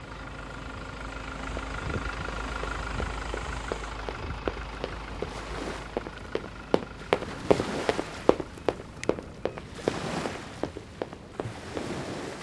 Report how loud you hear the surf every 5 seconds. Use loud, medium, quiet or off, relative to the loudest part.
medium, loud, loud.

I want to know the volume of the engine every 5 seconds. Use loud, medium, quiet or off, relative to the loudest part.
loud, medium, off.